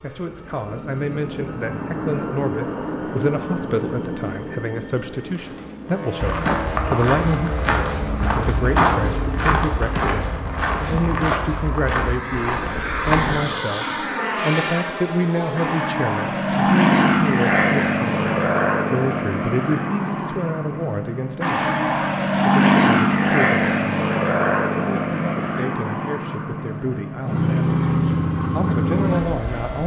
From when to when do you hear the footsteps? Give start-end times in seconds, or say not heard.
6.2-13.4.